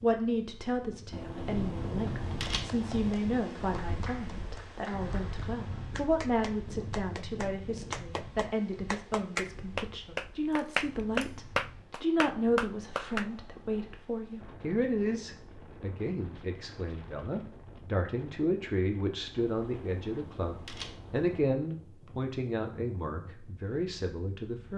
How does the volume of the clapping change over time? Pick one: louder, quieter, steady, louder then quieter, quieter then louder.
louder.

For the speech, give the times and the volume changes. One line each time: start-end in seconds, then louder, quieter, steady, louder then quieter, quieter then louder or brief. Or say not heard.
0.0-24.7 steady.